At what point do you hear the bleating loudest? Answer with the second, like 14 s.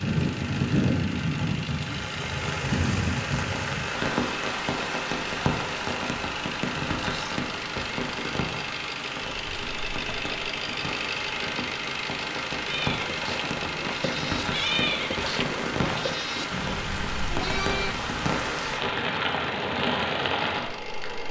15 s.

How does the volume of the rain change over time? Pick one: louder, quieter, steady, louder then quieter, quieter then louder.
quieter then louder.